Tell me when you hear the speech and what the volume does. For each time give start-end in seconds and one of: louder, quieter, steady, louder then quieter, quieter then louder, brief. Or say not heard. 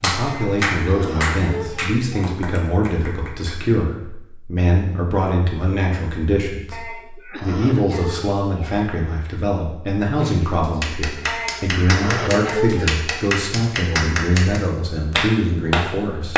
0.0-16.3 steady.